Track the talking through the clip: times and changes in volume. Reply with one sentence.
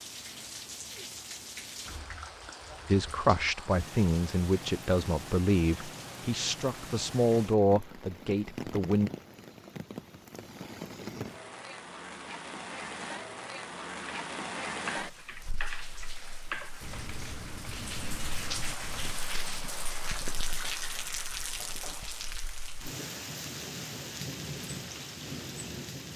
The talking can be heard from 2.9 to 9.1 s, at a steady volume.